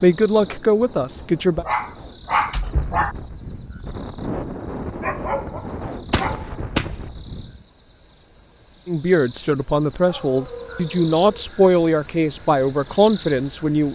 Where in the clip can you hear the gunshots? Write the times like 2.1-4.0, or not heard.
6.0-7.0.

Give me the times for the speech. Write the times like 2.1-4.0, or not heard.
0.0-1.6, 8.8-13.9.